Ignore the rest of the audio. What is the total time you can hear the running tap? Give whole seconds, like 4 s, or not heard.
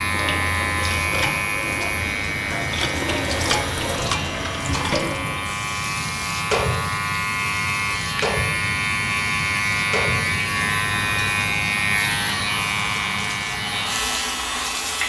15 s.